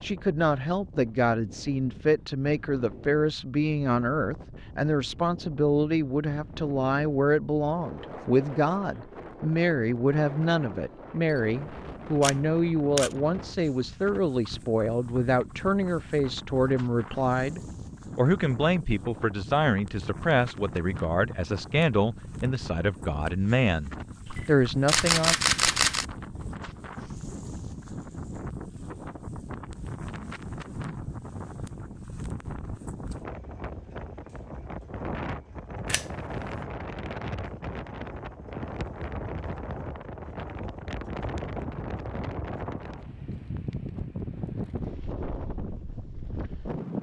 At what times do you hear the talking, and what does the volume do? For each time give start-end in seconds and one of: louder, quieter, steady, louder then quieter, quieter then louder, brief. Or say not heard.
0.0-25.4 steady.